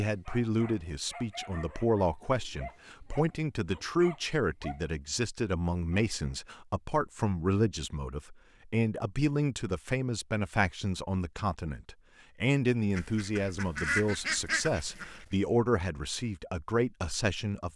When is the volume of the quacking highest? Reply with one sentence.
The loudest moment of the quacking is at 14 seconds.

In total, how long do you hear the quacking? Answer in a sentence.
The quacking can be heard for 2 seconds in total.